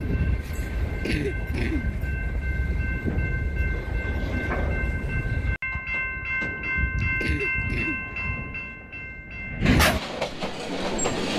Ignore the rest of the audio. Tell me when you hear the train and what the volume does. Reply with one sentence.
You can hear the train from 0.0 to 11.3 s, getting louder.